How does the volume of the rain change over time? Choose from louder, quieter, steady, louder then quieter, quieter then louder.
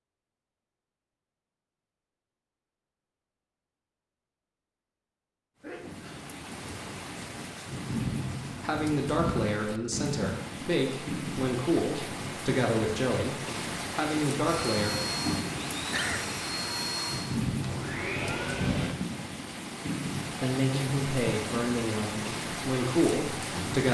steady.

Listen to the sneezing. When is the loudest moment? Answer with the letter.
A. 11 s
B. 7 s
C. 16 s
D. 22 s
C.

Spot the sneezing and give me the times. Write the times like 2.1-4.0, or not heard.
5.6-6.3, 15.8-16.2.